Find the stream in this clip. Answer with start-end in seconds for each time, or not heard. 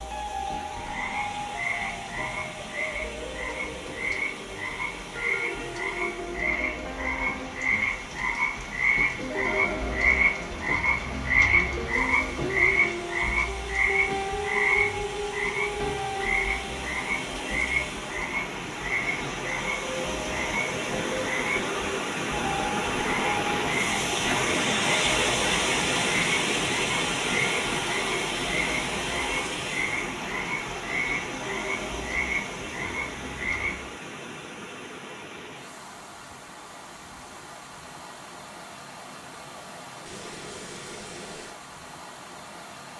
0.0-42.9.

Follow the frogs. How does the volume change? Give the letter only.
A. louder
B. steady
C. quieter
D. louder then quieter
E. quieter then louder
D.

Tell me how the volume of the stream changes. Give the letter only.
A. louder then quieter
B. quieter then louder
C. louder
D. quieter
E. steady
A.